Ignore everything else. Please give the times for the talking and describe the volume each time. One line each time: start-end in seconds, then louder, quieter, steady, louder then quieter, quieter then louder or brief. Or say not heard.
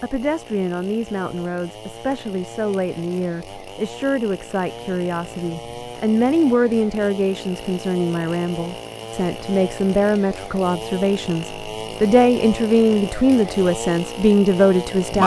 0.0-15.2 louder.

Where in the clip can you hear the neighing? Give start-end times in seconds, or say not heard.
not heard.